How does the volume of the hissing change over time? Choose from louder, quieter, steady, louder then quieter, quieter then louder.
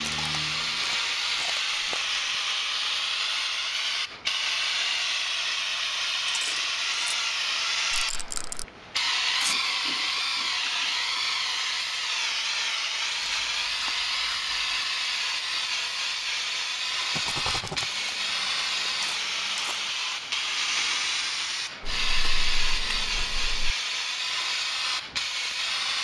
steady.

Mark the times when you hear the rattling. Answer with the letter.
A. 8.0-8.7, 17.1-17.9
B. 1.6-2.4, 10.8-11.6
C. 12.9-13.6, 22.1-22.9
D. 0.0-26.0
A.